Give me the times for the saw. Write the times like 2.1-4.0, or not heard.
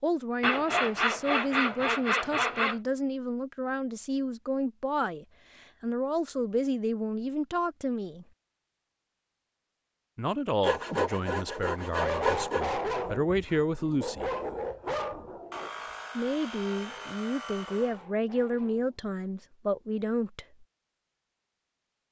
0.4-2.8, 10.6-12.7, 15.5-18.0.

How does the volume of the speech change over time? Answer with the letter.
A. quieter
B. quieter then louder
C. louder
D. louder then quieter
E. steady
E.